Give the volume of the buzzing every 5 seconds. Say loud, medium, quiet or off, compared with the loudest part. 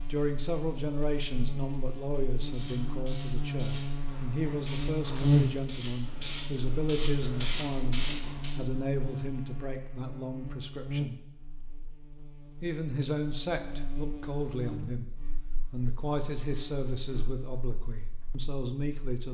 medium, loud, medium, quiet.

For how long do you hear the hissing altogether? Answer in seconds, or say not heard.
6 s.